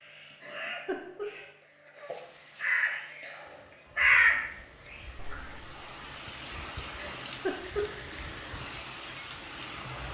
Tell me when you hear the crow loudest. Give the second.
4 s.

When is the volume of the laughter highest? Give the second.
8 s.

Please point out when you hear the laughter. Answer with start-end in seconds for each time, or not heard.
0.3-1.2, 6.8-8.1.